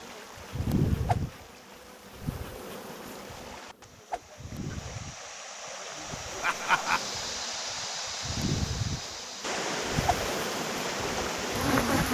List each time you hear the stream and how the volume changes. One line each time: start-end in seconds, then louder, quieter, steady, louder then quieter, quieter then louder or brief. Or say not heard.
0.0-12.0 louder.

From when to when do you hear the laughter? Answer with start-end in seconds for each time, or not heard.
6.4-7.0.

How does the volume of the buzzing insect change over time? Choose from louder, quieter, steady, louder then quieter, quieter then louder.
quieter then louder.